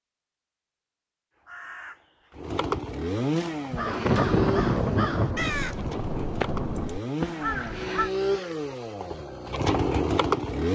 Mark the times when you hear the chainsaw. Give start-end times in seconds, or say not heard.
2.4-10.7.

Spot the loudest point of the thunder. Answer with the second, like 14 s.
4 s.